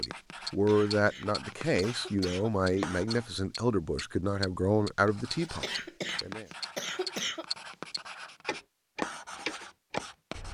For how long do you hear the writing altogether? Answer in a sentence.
You can hear the writing for 9 seconds altogether.